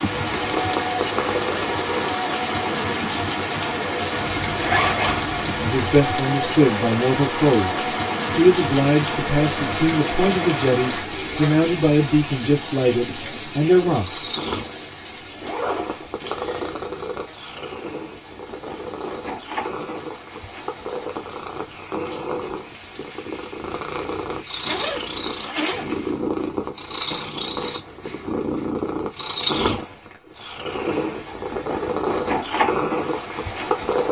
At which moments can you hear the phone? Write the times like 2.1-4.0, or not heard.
not heard.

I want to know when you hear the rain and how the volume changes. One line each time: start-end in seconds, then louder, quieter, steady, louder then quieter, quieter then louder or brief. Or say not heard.
0.0-26.2 quieter.